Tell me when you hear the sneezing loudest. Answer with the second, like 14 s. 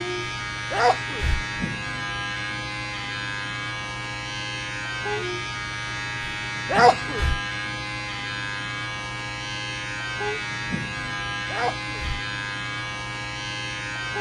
7 s.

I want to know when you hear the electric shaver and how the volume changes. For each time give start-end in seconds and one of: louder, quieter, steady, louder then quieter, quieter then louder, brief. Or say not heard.
0.0-14.1 steady.